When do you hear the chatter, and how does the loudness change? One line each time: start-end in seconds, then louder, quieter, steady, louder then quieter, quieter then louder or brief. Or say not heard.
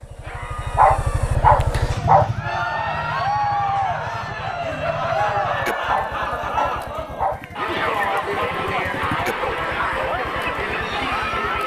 0.1-11.6 louder.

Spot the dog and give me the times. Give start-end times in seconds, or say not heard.
0.8-2.3, 5.8-7.5.